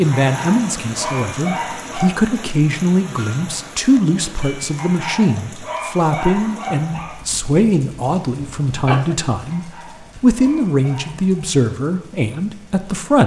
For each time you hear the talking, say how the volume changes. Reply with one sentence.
The talking can be heard from 0.0 to 13.2 s, at a steady volume.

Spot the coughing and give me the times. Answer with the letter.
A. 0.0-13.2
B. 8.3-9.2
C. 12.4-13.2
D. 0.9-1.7
B.